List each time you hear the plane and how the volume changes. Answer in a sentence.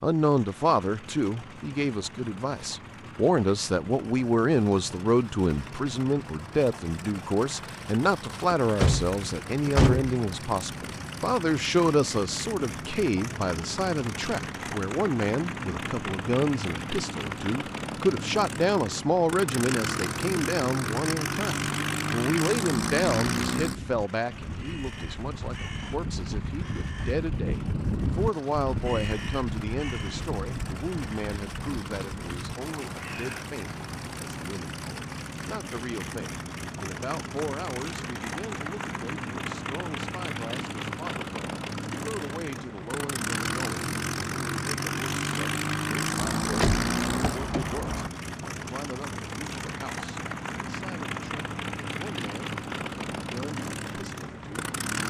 You can hear the plane from 0.1 to 55.0 s, getting louder.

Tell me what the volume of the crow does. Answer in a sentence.
The volume of the crow goes up, then down.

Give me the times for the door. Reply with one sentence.
The door can be heard from 8.5 to 10.2 s and from 46.1 to 48.1 s.